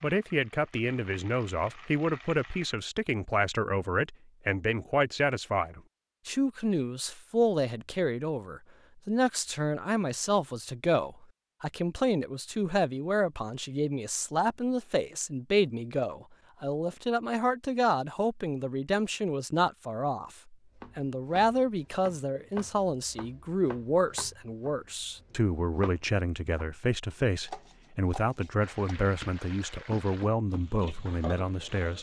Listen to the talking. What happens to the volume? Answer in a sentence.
The volume of the talking stays about the same.